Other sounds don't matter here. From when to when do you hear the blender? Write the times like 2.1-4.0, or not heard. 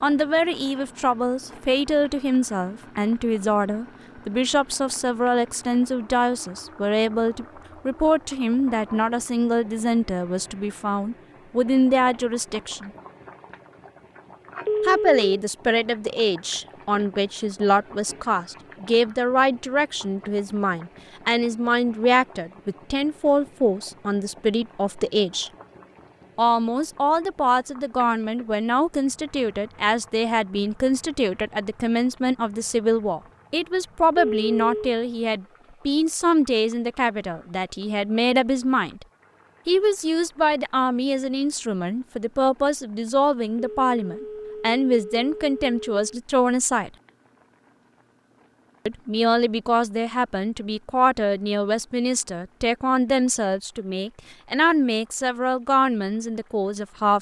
not heard.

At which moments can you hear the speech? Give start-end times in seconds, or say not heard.
0.0-12.9, 14.8-25.5, 26.4-39.0, 39.6-46.9, 48.9-57.1.